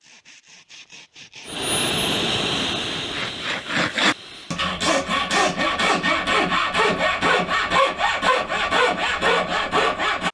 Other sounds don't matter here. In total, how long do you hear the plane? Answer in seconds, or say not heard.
3 s.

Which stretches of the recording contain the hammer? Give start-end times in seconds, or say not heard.
not heard.